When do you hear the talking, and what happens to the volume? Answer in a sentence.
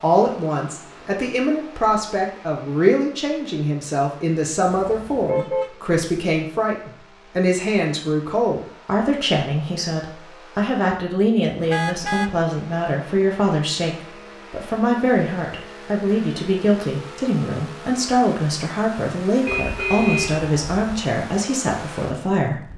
You can hear the talking from 0.0 to 22.7 s, at a steady volume.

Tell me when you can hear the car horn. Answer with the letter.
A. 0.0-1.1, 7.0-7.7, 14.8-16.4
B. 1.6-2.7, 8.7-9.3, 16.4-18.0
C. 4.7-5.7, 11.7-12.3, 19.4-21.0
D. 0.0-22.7
C.